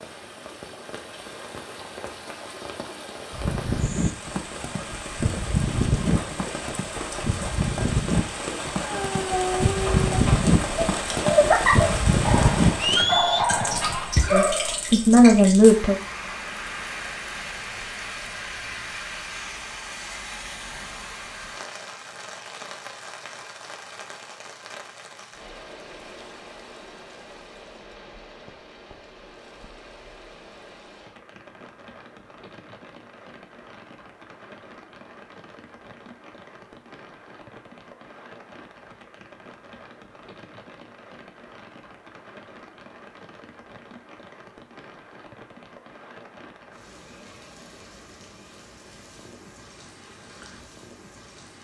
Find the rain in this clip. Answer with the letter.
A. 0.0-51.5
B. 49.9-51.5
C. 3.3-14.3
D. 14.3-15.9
A.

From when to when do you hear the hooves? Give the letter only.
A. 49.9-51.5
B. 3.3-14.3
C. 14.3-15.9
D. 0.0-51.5
B.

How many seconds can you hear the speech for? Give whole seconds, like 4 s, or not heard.
2 s.